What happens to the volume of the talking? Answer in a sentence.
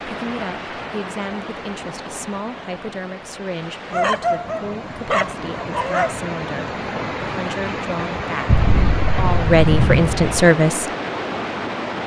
The volume of the talking goes up.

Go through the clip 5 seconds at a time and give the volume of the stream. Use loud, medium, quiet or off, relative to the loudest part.
medium, loud, loud.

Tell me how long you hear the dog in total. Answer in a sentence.
You can hear the dog for 2 seconds altogether.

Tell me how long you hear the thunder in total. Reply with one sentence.
You can hear the thunder for 2 seconds altogether.